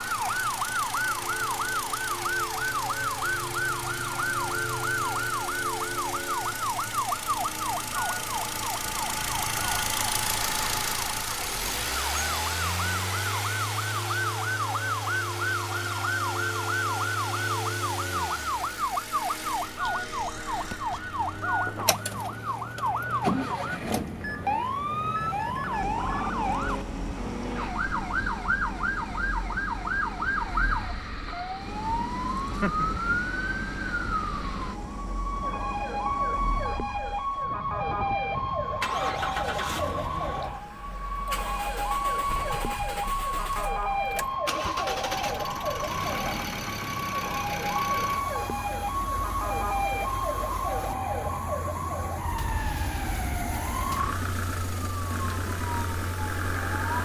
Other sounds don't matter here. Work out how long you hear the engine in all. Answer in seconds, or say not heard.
57 s.